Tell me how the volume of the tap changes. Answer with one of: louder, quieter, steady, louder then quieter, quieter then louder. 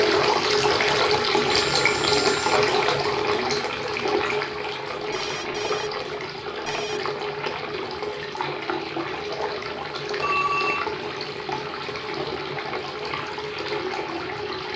quieter.